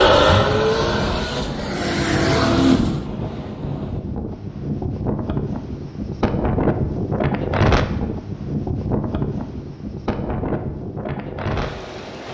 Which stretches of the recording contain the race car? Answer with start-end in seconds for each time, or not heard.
0.0-3.0.